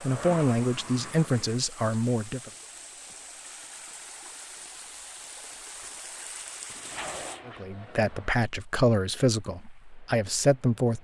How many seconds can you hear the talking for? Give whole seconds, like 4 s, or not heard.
6 s.